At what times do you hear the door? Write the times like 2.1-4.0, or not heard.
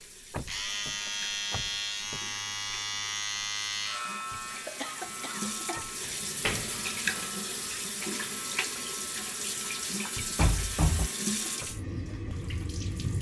0.3-2.2, 6.4-7.2, 10.3-11.1.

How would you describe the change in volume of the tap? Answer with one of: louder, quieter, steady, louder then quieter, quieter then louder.
louder.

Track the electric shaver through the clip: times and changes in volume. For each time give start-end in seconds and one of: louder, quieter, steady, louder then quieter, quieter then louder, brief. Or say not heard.
0.0-11.8 quieter.